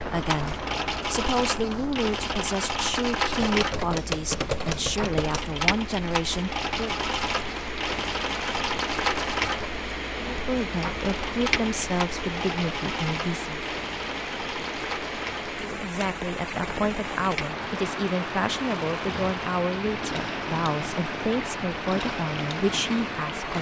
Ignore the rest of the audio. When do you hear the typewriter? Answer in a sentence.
You can hear the typewriter from 3.4 to 5.4 s.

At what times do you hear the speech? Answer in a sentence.
You can hear the speech from 0.0 to 7.0 s, from 10.2 to 13.6 s and from 15.6 to 23.5 s.